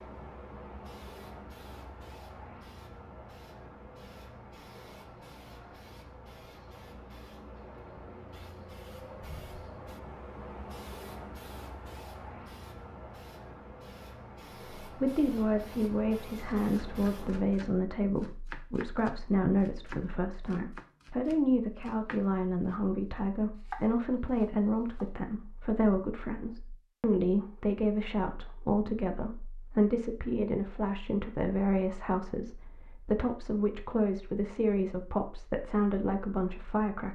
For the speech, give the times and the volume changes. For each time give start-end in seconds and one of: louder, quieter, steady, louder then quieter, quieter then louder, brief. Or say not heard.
14.8-37.0 steady.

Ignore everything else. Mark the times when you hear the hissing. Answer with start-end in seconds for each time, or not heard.
0.0-17.4.